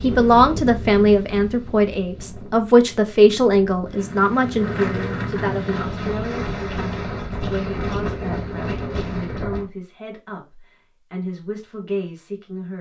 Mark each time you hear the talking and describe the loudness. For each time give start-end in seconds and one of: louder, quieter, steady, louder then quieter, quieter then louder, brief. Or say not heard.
0.0-12.7 quieter.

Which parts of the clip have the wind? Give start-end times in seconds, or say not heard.
0.0-9.7.